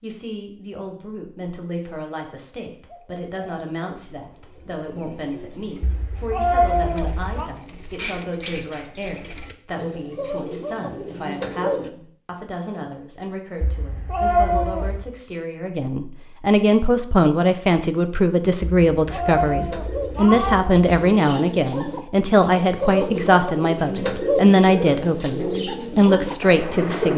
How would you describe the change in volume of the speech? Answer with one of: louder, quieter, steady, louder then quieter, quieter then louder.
louder.